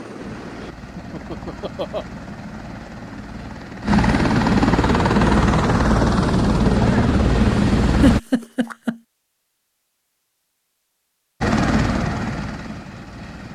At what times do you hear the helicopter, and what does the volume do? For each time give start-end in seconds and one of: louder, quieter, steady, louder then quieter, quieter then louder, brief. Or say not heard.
0.0-8.2 louder
11.4-13.5 brief.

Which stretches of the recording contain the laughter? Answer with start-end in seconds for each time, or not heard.
0.9-2.0, 8.0-9.0.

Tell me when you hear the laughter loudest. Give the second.
8 s.